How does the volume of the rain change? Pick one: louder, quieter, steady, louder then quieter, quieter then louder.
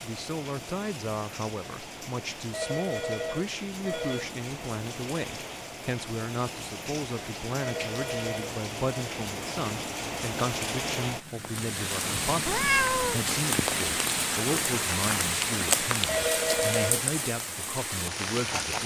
louder.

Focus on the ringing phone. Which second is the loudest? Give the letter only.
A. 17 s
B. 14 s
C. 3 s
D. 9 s
A.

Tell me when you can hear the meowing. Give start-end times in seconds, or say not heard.
12.4-13.2.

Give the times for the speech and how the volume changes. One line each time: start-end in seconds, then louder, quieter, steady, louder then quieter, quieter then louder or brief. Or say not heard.
0.0-18.8 steady.